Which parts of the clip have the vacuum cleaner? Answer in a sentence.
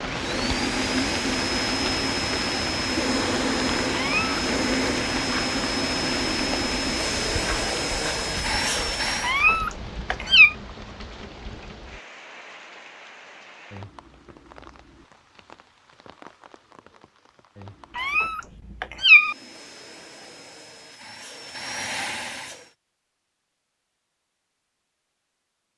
You can hear the vacuum cleaner from 0.0 to 9.4 s and from 19.1 to 22.8 s.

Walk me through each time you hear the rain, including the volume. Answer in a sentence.
The rain can be heard from 0.0 to 18.4 s, getting quieter.